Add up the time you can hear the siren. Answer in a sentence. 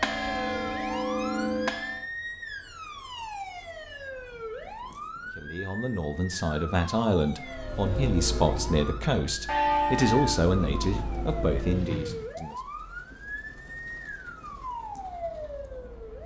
You can hear the siren for 16 seconds altogether.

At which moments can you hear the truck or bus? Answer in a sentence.
You can hear the truck or bus from 7.5 to 12.3 s.